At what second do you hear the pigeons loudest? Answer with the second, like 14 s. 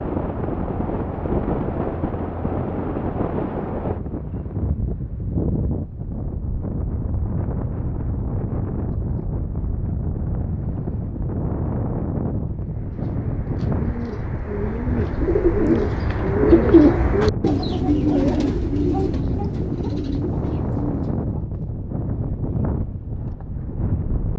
17 s.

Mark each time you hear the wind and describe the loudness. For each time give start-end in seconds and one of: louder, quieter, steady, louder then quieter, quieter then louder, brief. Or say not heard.
0.0-24.3 steady.